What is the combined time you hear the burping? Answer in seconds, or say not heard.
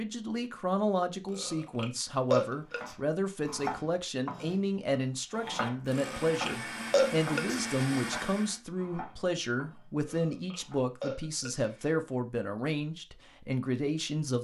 5 s.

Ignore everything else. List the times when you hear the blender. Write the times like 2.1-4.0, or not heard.
5.3-8.6.